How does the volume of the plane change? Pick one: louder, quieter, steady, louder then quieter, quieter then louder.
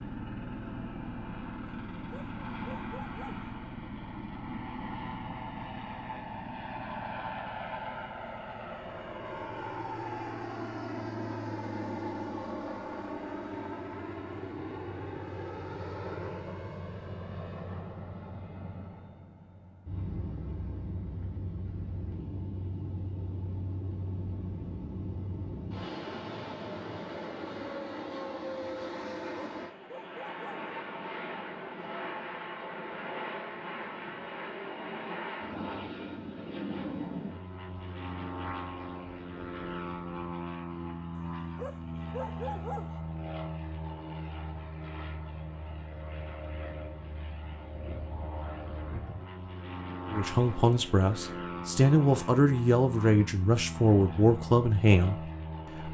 steady.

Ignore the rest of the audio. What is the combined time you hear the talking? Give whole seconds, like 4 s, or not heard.
6 s.